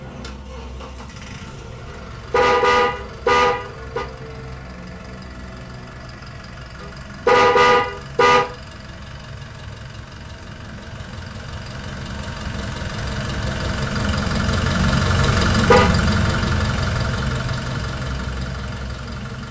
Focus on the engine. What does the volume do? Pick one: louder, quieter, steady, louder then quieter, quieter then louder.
louder.